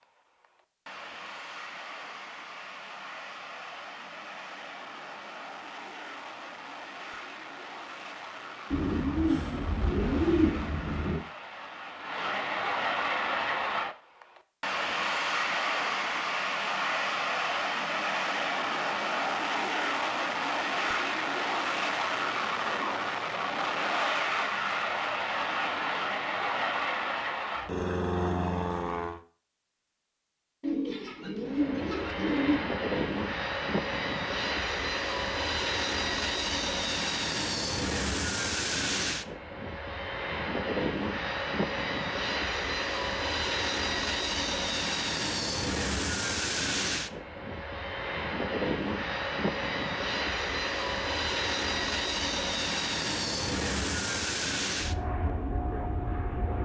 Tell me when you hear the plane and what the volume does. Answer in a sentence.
The plane can be heard from 0.0 to 29.2 s, getting louder; and from 31.4 to 56.6 s, at a steady volume.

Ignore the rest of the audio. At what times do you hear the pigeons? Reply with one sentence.
You can hear the pigeons from 8.7 to 11.2 s and from 30.6 to 32.6 s.